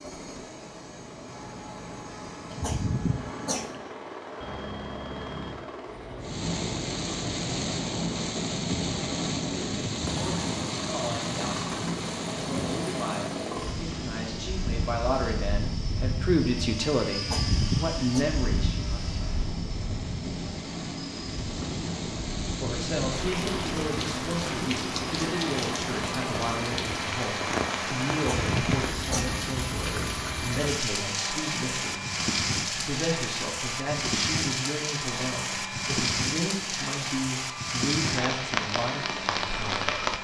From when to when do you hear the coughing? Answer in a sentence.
You can hear the coughing from 2.5 to 3.9 s, from 17.1 to 18.2 s and from 28.1 to 29.3 s.